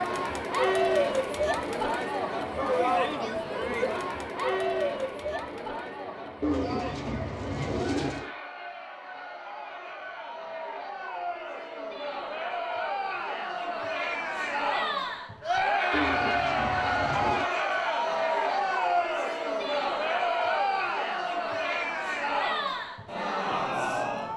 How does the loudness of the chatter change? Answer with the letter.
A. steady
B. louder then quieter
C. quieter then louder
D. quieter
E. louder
C.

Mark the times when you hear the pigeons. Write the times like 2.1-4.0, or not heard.
6.4-8.3, 15.9-17.5.